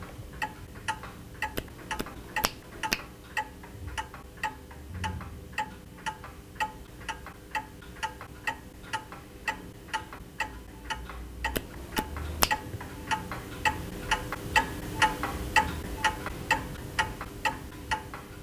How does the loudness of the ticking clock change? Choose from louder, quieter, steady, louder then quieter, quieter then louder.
louder.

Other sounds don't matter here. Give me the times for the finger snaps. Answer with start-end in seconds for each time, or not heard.
1.6-3.0, 11.6-12.6.